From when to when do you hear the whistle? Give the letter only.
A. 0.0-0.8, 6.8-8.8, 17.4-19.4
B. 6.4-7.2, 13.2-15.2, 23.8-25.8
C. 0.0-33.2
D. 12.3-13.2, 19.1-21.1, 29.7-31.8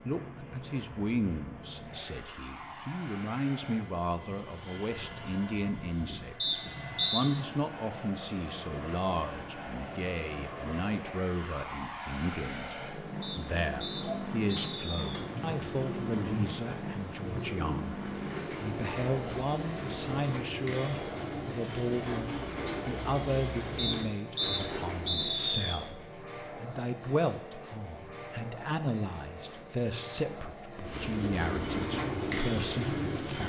B.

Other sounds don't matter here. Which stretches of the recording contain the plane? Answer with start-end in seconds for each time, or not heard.
0.0-33.2.